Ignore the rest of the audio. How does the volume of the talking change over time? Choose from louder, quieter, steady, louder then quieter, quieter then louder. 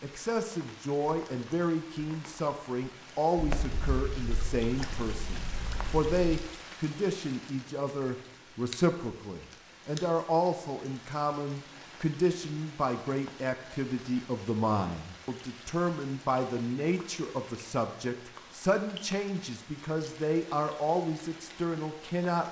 steady.